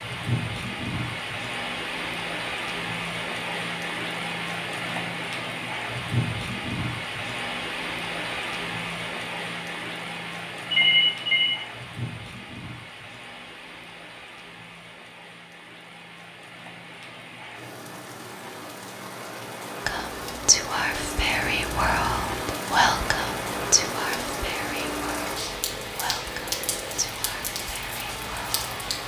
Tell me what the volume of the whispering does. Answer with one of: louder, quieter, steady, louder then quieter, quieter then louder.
quieter.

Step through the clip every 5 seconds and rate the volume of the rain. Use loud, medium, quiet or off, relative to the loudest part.
loud, loud, medium, medium, loud, loud.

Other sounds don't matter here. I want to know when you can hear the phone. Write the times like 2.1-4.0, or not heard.
10.7-11.6.